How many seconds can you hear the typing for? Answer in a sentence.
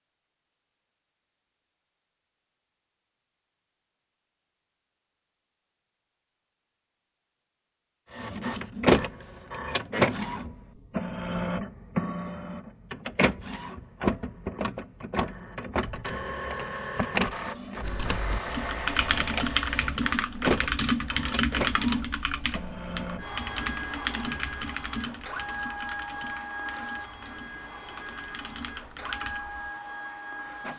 The typing can be heard for 12 seconds in total.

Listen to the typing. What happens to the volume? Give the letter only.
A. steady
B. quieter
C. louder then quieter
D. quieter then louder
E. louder
B.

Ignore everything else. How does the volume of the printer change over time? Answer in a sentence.
The volume of the printer goes down.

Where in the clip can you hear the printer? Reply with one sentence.
The printer can be heard from 8.1 to 30.7 s.